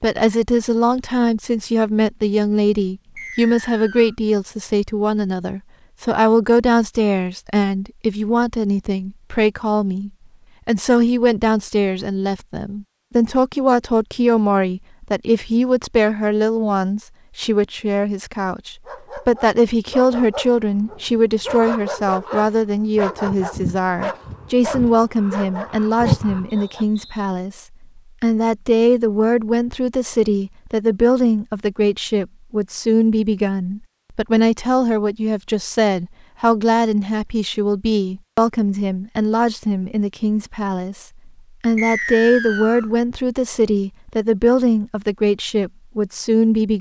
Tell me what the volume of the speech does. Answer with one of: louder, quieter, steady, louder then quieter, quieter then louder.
steady.